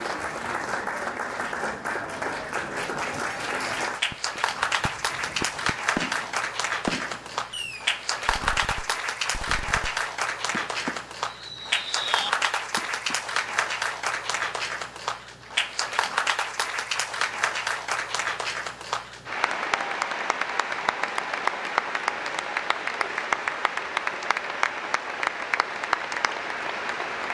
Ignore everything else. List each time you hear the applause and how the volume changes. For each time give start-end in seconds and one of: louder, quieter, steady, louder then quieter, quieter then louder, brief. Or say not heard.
0.0-27.2 steady.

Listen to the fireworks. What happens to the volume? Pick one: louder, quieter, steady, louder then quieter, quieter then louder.
quieter then louder.